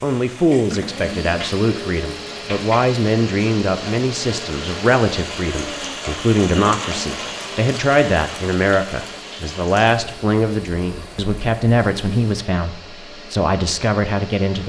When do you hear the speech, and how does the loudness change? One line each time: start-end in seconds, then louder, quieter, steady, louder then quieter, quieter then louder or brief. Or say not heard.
0.0-14.6 steady.